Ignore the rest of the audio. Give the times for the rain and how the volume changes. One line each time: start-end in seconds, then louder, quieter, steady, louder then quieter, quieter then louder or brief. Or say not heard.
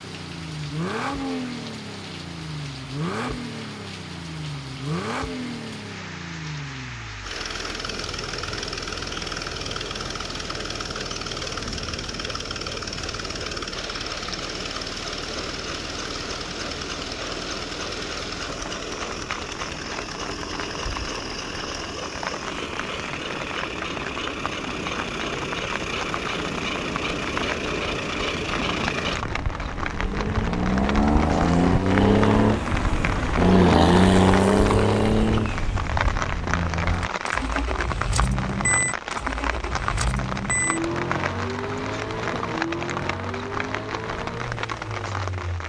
0.0-45.6 louder.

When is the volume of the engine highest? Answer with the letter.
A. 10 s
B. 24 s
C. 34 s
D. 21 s
C.